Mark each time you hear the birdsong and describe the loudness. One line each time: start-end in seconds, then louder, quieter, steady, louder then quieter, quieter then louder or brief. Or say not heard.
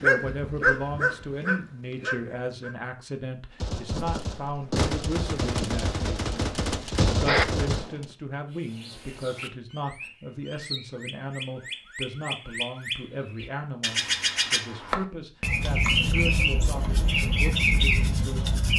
8.5-18.7 louder.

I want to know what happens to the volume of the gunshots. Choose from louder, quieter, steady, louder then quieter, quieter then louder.
louder.